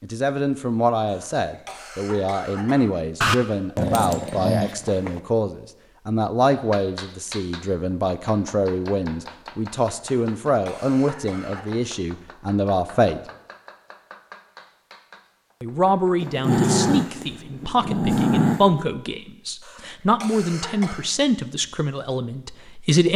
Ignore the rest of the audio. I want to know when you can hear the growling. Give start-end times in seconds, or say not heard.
3.2-5.2, 16.2-18.9.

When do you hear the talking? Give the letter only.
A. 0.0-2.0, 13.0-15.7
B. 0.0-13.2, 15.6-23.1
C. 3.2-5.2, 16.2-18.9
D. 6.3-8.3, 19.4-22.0
B.